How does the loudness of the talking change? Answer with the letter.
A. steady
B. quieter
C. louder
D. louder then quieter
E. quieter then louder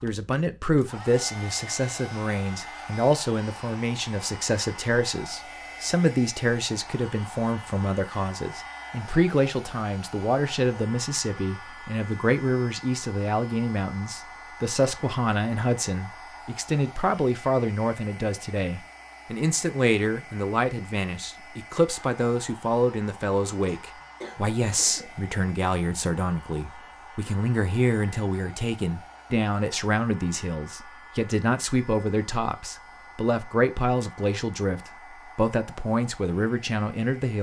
A.